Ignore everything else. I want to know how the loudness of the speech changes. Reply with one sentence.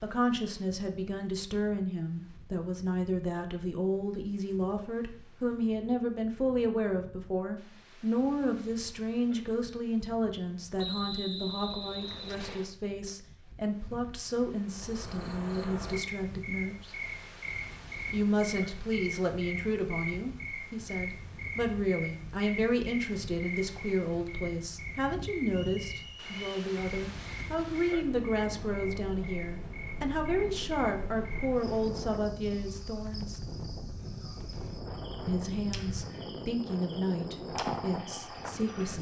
The volume of the speech stays about the same.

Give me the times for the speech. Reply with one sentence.
You can hear the speech from 0.0 to 16.9 s, from 18.1 to 33.4 s and from 35.2 to 38.9 s.